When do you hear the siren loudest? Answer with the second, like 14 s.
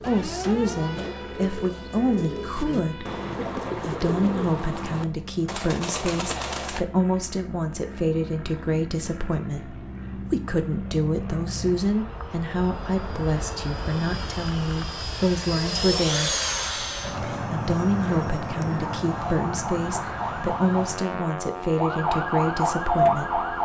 23 s.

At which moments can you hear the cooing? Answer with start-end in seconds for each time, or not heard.
0.0-6.8.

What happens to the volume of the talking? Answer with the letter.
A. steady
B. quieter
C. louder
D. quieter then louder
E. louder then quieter
A.